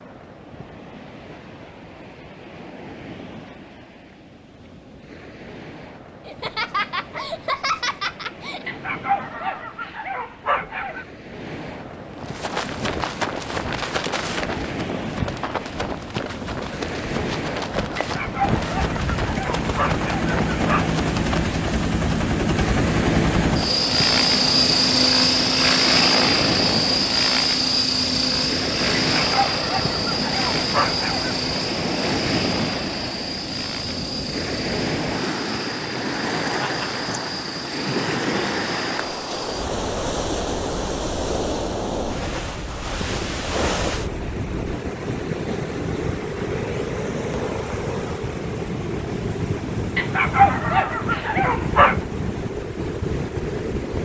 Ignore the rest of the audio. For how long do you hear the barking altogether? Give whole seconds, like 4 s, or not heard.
10 s.